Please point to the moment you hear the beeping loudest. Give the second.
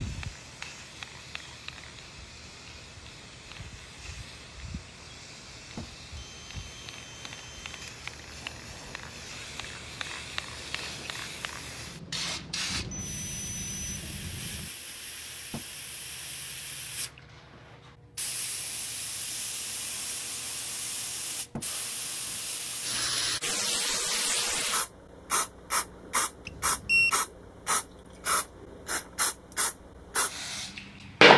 27 s.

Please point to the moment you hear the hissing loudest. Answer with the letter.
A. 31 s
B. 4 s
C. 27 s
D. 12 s
A.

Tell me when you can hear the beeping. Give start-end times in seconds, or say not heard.
6.2-7.9, 12.7-14.7, 26.4-27.1.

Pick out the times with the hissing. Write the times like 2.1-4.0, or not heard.
0.0-17.1, 18.1-31.3.